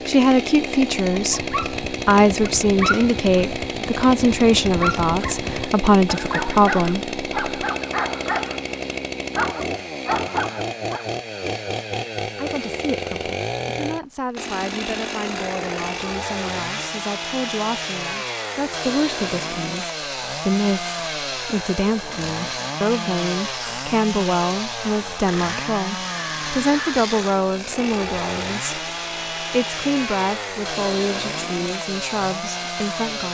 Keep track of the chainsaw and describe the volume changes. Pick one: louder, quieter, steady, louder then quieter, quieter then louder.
steady.